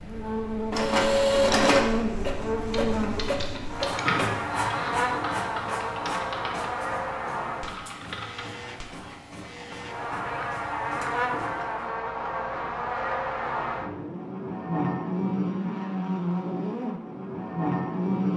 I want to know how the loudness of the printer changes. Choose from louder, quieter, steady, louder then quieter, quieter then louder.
quieter.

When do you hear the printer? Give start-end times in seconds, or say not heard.
0.0-11.7.